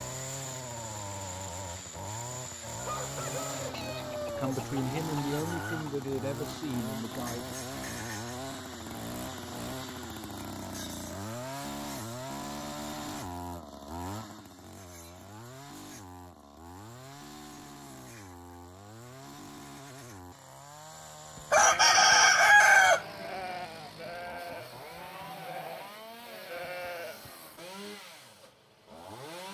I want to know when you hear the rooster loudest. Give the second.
23 s.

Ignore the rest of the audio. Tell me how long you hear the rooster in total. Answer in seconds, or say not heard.
5 s.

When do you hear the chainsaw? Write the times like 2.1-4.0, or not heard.
0.0-29.4.